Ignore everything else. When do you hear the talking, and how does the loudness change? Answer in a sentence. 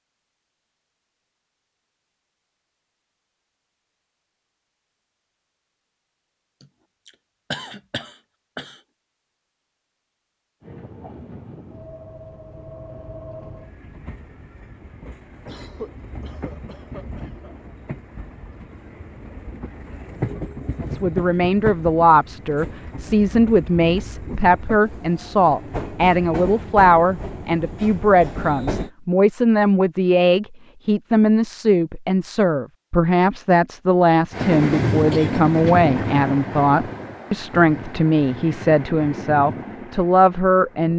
You can hear the talking from 20.8 to 40.9 s, at a steady volume.